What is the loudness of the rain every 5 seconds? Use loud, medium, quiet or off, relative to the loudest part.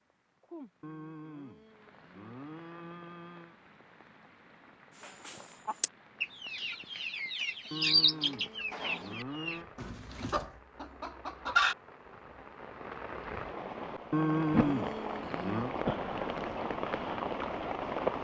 quiet, quiet, medium, loud.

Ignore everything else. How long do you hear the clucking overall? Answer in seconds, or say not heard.
7 s.